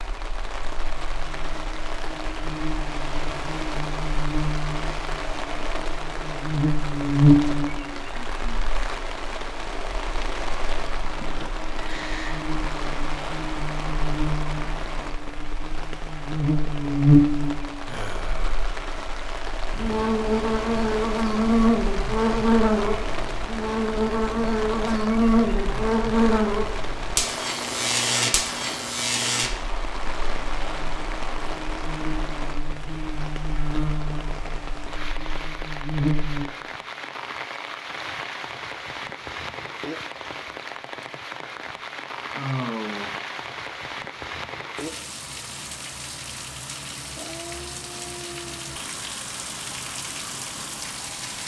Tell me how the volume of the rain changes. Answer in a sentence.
The loudness of the rain stays about the same.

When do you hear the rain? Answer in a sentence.
You can hear the rain from 0.0 to 51.4 s.